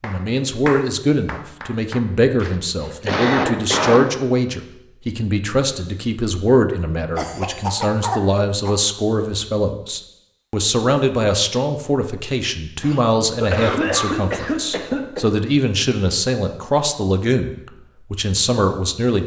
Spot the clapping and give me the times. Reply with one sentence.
The clapping can be heard from 0.0 to 2.6 s.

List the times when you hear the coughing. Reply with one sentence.
You can hear the coughing from 2.8 to 4.1 s, from 7.2 to 8.8 s and from 12.8 to 15.2 s.